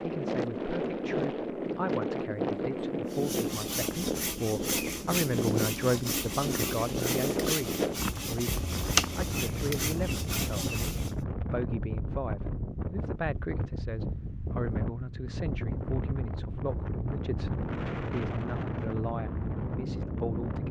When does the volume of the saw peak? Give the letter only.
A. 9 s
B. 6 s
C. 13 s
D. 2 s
A.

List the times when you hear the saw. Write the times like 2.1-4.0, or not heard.
3.1-11.2.